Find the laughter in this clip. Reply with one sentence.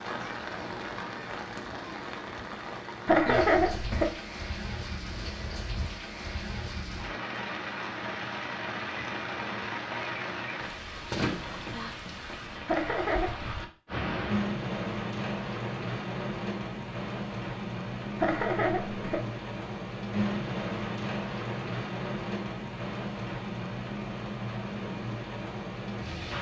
The laughter can be heard from 3.0 to 4.1 s, from 12.7 to 13.3 s and from 18.1 to 19.2 s.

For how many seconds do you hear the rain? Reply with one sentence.
You can hear the rain for 26 seconds altogether.